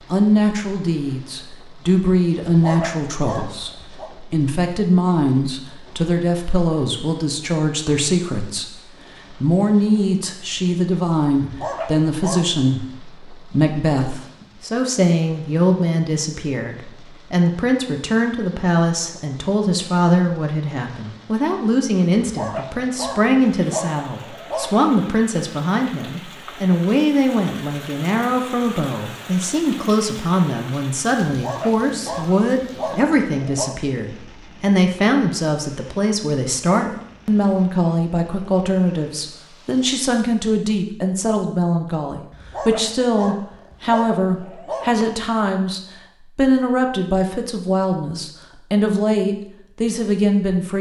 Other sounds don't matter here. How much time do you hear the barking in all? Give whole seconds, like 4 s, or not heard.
11 s.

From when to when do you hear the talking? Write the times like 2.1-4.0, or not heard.
0.1-50.7.